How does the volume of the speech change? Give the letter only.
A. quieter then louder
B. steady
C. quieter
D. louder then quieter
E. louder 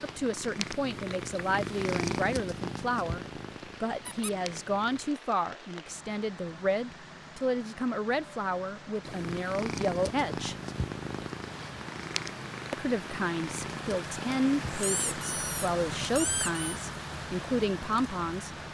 B.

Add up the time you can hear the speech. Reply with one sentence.
You can hear the speech for 16 seconds altogether.